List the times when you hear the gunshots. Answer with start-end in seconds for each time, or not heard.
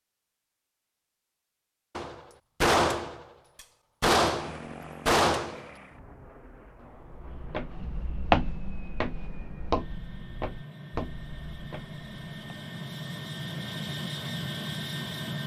1.9-3.2, 4.0-5.7.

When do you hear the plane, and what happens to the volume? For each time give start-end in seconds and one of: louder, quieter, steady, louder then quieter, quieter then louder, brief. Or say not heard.
4.2-15.4 quieter then louder.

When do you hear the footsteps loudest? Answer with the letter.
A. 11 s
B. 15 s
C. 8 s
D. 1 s
C.